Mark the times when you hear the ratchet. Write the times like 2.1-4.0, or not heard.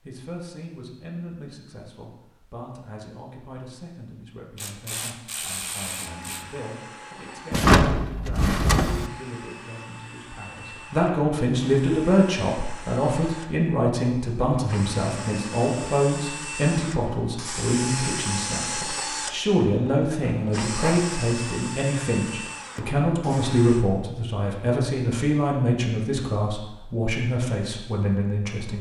4.5-6.5.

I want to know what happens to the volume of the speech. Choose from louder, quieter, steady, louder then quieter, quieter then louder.
louder.